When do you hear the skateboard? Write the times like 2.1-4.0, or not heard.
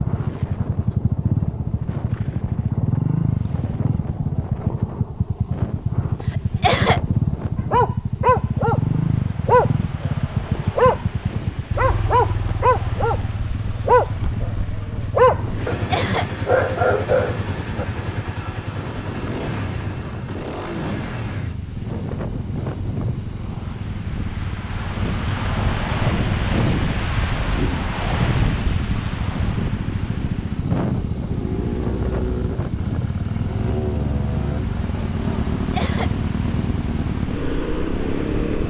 not heard.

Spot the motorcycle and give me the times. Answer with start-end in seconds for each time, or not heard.
0.0-38.6.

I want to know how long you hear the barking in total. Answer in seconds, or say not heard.
8 s.